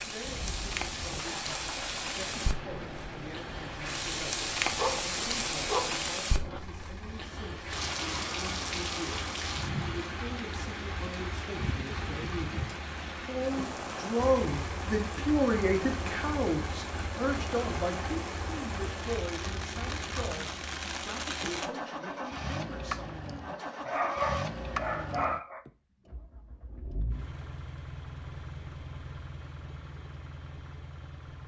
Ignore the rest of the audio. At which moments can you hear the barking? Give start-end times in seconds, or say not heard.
4.7-6.6, 23.9-25.6.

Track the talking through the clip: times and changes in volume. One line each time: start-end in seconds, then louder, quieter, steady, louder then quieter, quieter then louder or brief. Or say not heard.
0.0-24.1 louder then quieter.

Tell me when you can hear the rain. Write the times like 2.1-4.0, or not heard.
0.0-21.7.